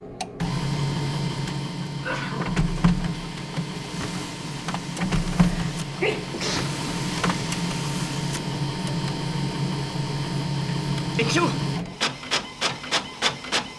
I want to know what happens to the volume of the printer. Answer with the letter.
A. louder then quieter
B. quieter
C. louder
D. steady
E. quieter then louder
D.